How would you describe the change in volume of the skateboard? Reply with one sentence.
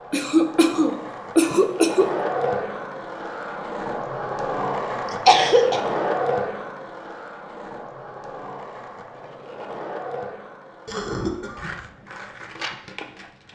The loudness of the skateboard goes down.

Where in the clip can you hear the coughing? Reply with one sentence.
You can hear the coughing from 0.1 to 2.2 s, from 5.0 to 5.8 s and from 10.8 to 11.8 s.